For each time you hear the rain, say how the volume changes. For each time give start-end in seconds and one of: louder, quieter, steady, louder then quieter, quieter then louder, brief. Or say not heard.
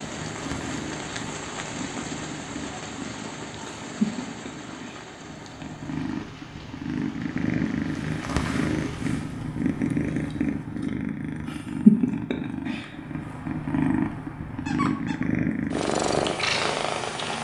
0.0-9.3 quieter.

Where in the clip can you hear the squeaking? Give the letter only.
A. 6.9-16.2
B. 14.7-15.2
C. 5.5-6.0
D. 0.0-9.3
B.